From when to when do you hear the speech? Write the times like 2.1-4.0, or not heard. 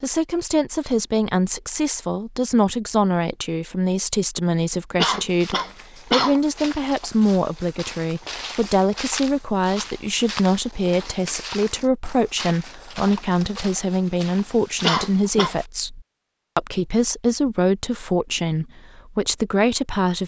0.0-20.2.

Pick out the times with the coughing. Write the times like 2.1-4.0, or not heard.
5.0-6.3, 14.8-15.6.